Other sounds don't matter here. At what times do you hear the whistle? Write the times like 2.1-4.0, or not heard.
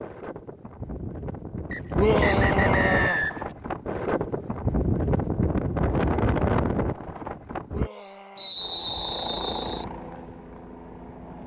1.7-3.5, 8.3-9.8.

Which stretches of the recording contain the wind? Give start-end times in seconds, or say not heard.
0.0-7.9.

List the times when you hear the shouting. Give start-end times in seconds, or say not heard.
1.9-3.2, 7.7-8.6.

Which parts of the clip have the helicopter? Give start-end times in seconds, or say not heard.
8.6-11.4.